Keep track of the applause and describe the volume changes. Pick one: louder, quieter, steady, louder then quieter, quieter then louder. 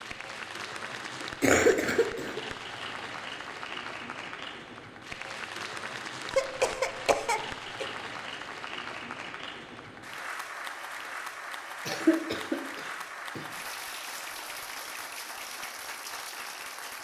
steady.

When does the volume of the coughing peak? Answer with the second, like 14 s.
2 s.